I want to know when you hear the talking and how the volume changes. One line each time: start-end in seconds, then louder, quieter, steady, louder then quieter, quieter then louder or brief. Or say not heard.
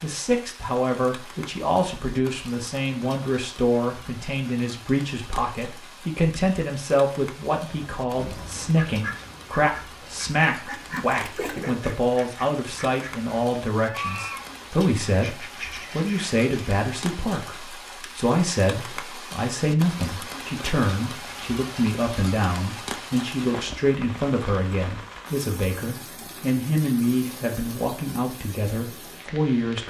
0.0-29.8 steady.